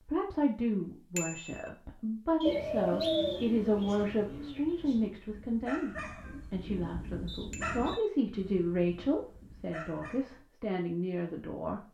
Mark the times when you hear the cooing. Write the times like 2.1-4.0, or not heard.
2.5-5.1.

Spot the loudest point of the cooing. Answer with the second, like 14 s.
3 s.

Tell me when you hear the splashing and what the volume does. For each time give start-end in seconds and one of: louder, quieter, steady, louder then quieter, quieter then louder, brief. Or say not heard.
not heard.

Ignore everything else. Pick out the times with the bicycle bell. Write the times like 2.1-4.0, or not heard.
1.1-1.7, 7.5-8.1.